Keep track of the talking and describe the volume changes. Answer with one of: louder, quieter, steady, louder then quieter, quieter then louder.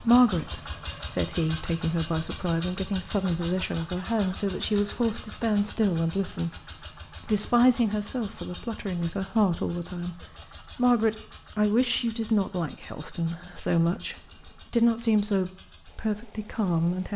steady.